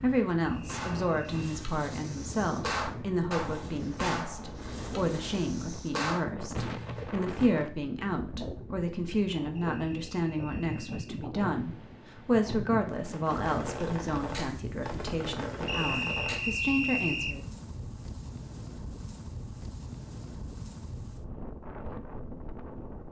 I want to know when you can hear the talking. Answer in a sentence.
The talking can be heard from 0.0 to 17.4 s.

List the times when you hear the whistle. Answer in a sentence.
You can hear the whistle from 0.4 to 1.6 s, from 9.6 to 11.2 s and from 15.7 to 17.4 s.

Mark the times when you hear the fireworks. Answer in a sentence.
The fireworks can be heard from 0.7 to 7.7 s and from 12.9 to 16.5 s.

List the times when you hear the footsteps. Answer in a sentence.
You can't hear the footsteps here.